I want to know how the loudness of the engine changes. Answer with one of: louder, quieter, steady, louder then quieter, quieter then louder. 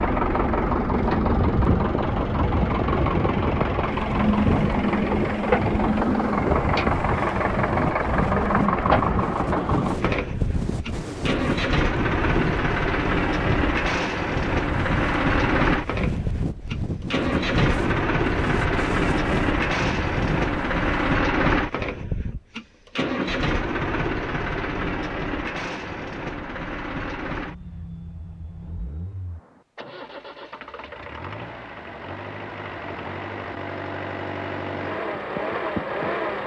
quieter.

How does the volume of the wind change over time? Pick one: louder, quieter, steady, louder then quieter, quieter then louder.
steady.